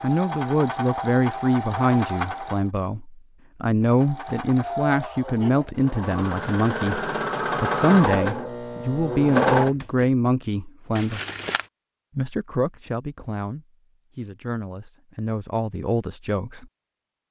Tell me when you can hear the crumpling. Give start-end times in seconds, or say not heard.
10.9-11.7.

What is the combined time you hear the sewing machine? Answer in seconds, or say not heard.
9 s.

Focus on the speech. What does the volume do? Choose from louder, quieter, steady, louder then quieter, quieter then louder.
quieter.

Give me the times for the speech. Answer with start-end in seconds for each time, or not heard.
0.0-11.2, 12.2-16.6.